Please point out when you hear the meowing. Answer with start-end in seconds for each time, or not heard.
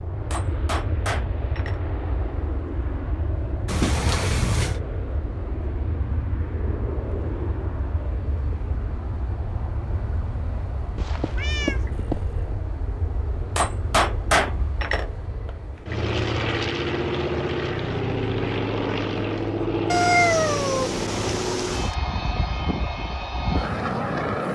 3.6-4.8, 10.9-12.6, 19.9-21.9.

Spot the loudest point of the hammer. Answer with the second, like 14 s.
14 s.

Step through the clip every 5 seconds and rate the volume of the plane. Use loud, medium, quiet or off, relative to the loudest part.
medium, medium, medium, loud, loud.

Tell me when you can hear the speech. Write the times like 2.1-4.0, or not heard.
not heard.